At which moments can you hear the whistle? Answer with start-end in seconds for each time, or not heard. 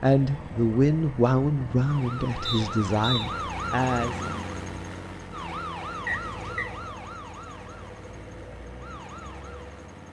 2.5-3.3, 6.0-6.7.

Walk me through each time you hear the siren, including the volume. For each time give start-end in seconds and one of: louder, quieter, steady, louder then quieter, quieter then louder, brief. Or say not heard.
0.2-10.0 louder then quieter.